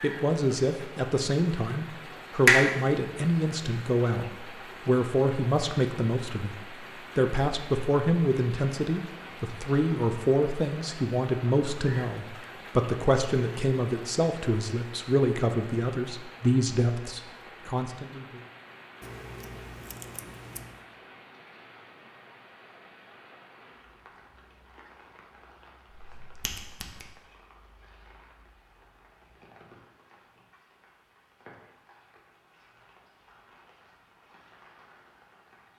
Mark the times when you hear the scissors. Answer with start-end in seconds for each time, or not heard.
19.0-20.9.